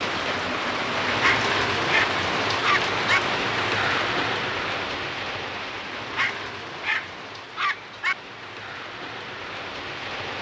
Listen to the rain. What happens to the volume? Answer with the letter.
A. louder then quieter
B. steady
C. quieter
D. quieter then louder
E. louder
C.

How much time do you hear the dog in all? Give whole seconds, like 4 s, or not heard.
4 s.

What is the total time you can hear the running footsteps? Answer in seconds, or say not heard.
not heard.